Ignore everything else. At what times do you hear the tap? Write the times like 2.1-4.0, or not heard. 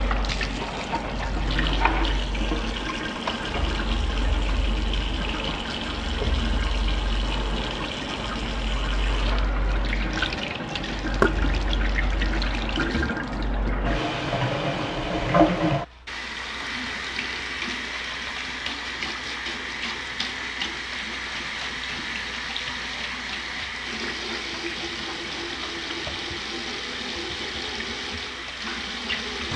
0.0-29.5.